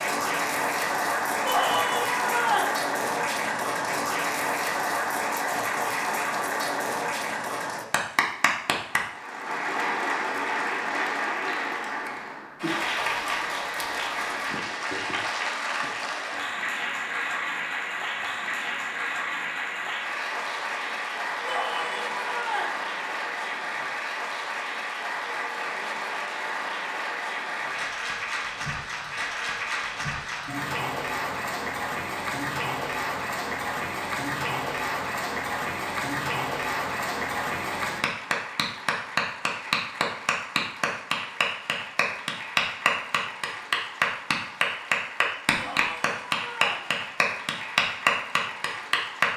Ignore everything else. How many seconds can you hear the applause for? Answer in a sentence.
You can hear the applause for 49 seconds altogether.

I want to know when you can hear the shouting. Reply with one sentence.
The shouting can be heard from 1.4 to 2.8 s, from 21.4 to 22.8 s and from 45.5 to 46.9 s.